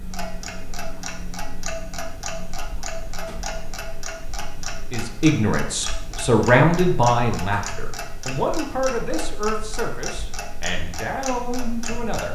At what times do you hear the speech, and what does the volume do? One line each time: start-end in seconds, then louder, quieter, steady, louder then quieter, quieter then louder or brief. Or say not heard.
4.9-12.3 quieter.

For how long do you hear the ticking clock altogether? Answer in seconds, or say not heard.
12 s.